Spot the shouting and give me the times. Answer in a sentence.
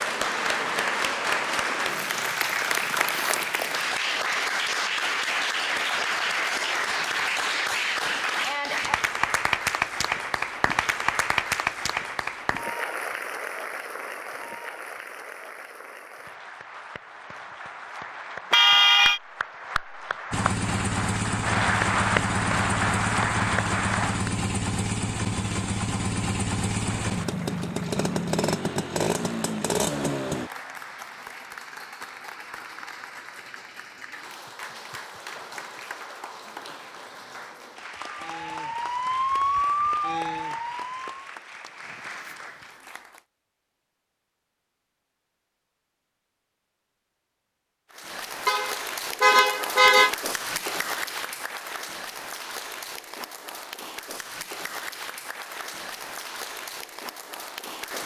You can't hear the shouting here.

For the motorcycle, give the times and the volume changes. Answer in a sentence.
You can hear the motorcycle from 20.3 to 30.5 s, at a steady volume.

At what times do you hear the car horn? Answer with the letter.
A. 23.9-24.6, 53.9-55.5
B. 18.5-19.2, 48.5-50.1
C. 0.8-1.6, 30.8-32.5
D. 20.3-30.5
B.